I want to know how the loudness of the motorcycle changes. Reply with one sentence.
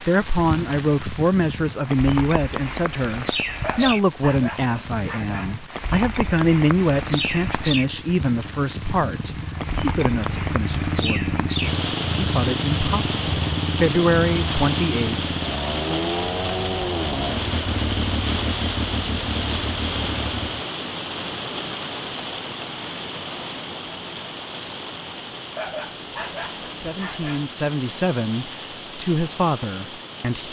The volume of the motorcycle goes up.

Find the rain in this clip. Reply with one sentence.
The rain can be heard from 0.0 to 30.4 s.